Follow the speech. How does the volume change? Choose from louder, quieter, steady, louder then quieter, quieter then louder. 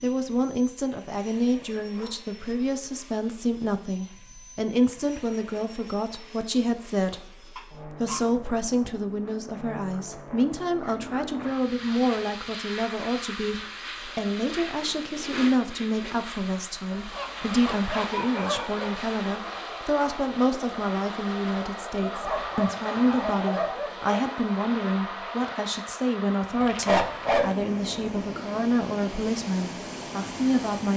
steady.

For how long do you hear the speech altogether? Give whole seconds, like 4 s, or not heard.
31 s.